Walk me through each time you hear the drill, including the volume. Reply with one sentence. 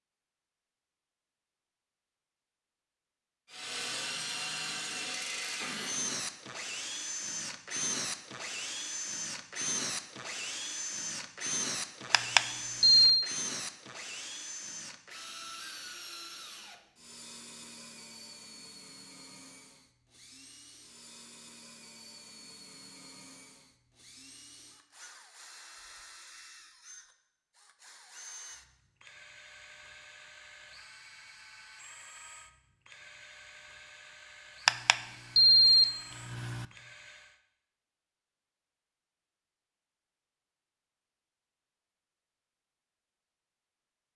You can hear the drill from 3.5 to 37.4 s, getting quieter.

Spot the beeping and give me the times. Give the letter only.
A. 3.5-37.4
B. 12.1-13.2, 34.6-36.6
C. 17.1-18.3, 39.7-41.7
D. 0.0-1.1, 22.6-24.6
B.